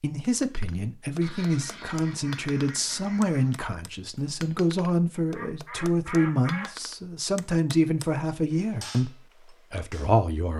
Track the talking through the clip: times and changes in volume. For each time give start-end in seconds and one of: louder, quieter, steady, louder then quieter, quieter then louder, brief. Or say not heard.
0.0-9.1 steady
9.7-10.5 brief.